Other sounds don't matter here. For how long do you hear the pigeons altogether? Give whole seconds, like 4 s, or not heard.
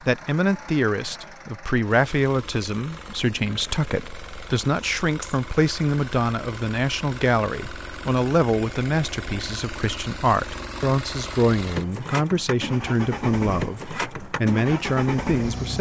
not heard.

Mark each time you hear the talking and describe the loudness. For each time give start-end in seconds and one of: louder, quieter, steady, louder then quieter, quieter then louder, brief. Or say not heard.
0.1-15.7 steady.